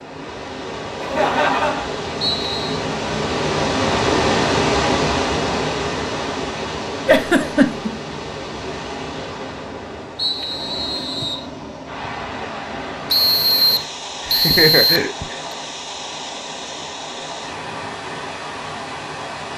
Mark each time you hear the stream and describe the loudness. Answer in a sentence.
You can hear the stream from 0.0 to 19.5 s, getting quieter.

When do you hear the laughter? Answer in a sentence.
The laughter can be heard from 1.0 to 1.9 s, from 7.0 to 7.9 s and from 14.2 to 15.3 s.